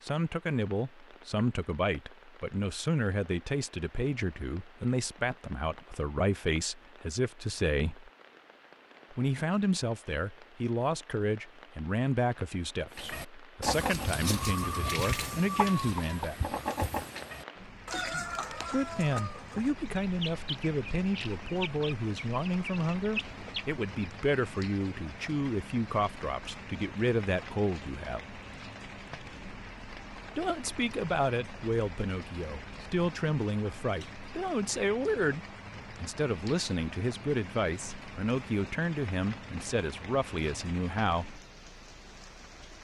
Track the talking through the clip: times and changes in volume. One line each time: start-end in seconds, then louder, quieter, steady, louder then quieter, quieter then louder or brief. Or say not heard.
0.0-8.1 steady
9.1-16.6 steady
18.7-28.4 steady
30.4-41.4 steady.